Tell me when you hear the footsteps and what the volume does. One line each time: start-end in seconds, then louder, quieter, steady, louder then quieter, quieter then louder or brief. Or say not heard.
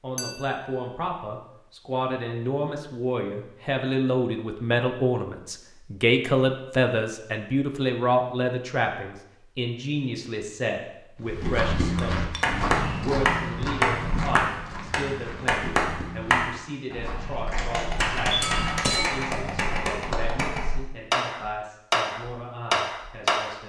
11.2-20.3 quieter.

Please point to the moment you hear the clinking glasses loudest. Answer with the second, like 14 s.
19 s.